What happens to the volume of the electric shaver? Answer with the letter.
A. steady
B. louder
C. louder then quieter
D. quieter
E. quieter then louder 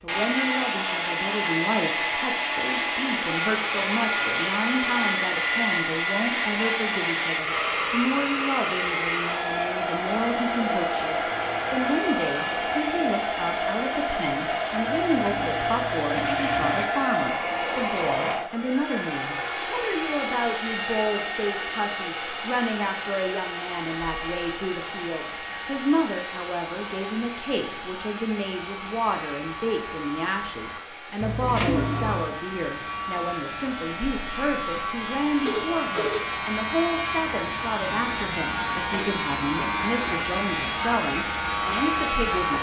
B.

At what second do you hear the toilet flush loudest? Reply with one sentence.
The loudest moment of the toilet flush is at 32 seconds.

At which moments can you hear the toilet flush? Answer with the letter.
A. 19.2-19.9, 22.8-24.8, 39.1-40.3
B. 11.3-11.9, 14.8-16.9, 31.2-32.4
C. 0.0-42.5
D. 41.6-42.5
B.